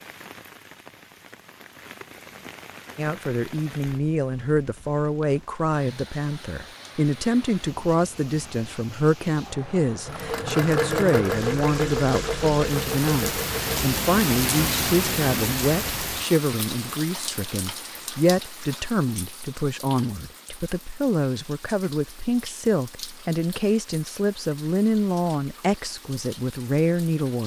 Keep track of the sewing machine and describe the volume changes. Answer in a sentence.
The volume of the sewing machine goes down.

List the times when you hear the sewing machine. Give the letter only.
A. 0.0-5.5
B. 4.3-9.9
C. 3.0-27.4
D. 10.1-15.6
D.